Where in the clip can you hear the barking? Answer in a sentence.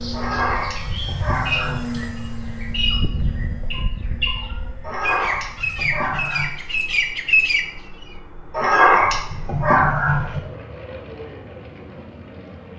The barking can be heard from 0.1 to 2.0 s, from 4.8 to 6.5 s and from 8.5 to 10.4 s.